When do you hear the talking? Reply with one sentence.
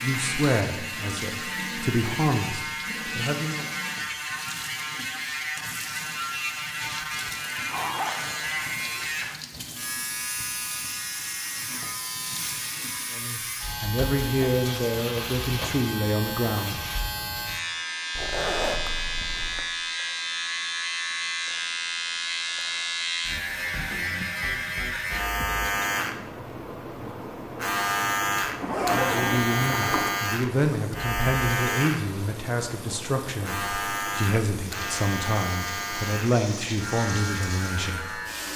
You can hear the talking from 0.0 to 3.7 s, from 13.1 to 16.8 s and from 28.9 to 38.2 s.